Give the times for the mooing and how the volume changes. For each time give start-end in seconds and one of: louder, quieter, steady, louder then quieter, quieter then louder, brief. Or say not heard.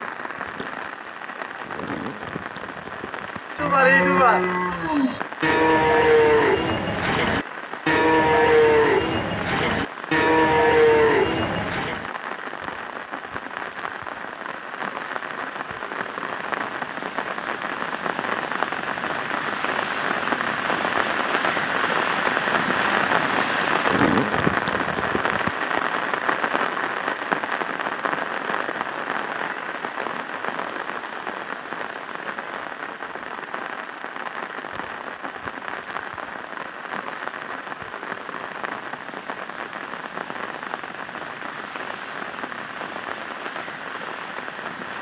3.5-12.1 steady.